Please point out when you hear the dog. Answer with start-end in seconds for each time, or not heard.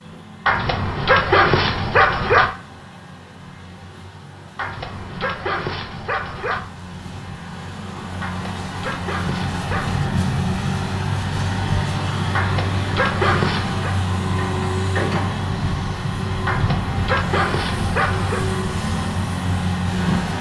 0.5-2.5, 4.5-6.6, 8.2-9.9, 12.3-13.9, 16.4-18.4.